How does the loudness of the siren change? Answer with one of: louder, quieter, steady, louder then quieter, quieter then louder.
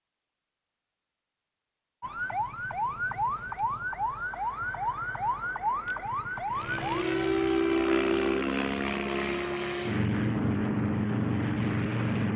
steady.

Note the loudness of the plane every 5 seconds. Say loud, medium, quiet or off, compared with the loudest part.
off, loud, loud.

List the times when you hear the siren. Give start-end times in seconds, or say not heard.
2.0-8.4.